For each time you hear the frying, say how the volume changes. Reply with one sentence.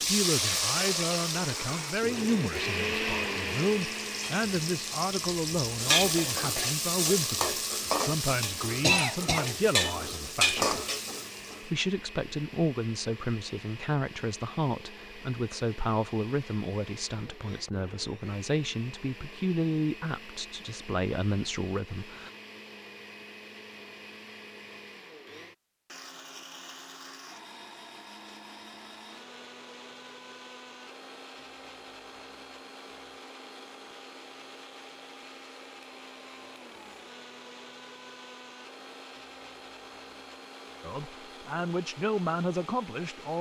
The frying can be heard from 0.0 to 11.6 s, getting quieter then louder.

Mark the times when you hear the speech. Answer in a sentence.
You can hear the speech from 0.1 to 10.8 s, from 11.6 to 22.3 s and from 40.8 to 43.3 s.